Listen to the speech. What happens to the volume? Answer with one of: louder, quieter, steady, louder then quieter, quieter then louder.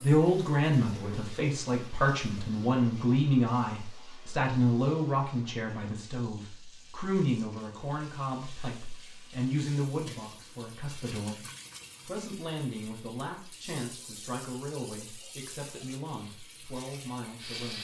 quieter.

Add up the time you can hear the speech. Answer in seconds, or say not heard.
17 s.